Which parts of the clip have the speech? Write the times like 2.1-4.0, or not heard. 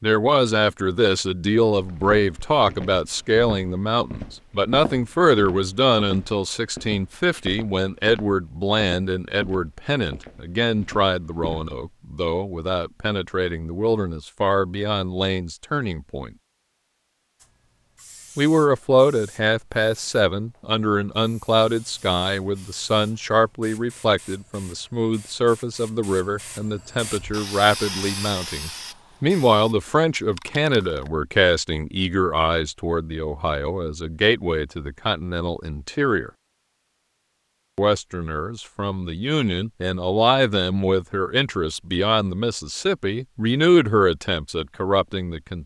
0.0-16.3, 18.4-36.3, 37.8-45.6.